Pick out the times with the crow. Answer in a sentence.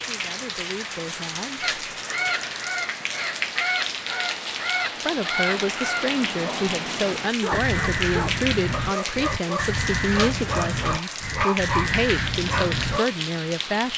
You can hear the crow from 1.6 to 13.0 s.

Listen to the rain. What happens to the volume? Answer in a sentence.
The loudness of the rain stays about the same.